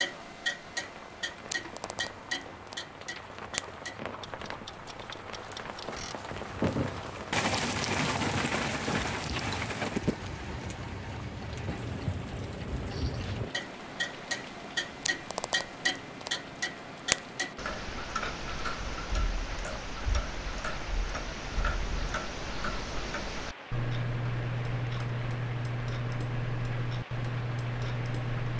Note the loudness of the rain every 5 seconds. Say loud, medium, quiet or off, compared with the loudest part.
quiet, loud, medium, quiet, quiet, quiet.